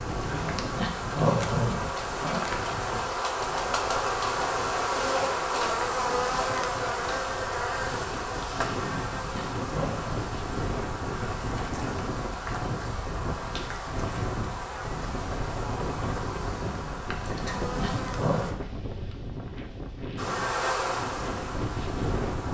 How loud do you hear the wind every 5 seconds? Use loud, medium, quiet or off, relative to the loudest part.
medium, medium, loud, loud, loud.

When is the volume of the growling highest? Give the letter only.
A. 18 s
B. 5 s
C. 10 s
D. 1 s
D.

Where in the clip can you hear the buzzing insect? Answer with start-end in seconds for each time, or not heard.
0.0-18.6, 20.1-22.4.